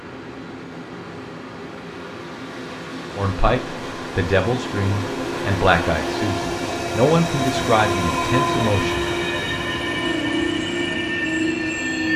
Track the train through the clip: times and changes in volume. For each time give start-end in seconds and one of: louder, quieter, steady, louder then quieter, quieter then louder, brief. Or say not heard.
0.0-12.1 louder.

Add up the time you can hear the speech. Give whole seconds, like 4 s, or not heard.
6 s.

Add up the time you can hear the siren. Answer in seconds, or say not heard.
not heard.